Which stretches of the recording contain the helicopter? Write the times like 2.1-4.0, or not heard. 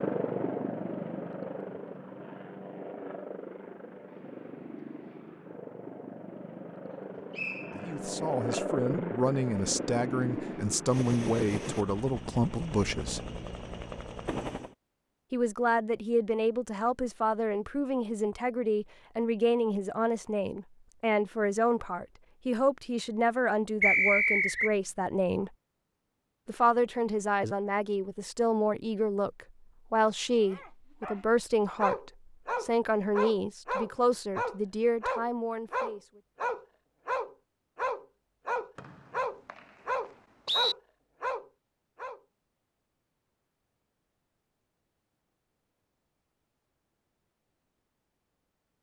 0.0-14.8.